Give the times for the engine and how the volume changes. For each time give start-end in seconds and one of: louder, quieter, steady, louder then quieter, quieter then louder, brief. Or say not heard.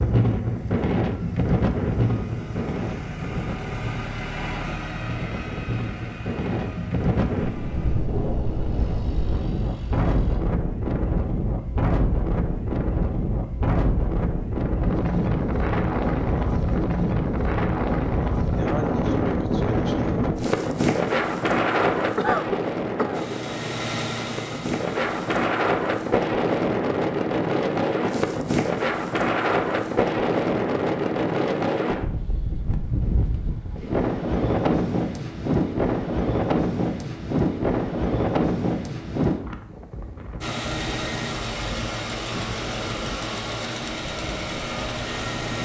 0.0-10.4 louder then quieter
23.1-25.4 brief
40.4-45.6 steady.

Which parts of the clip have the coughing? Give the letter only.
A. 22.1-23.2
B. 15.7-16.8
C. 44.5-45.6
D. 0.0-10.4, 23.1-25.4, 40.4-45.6
A.